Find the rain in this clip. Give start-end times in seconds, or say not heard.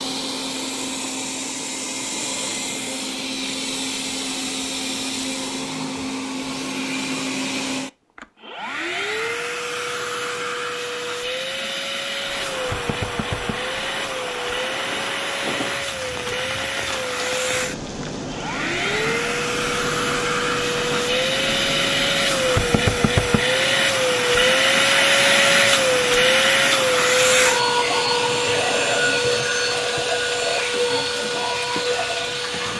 12.0-32.7.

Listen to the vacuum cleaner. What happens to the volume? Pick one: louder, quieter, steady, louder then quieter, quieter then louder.
louder.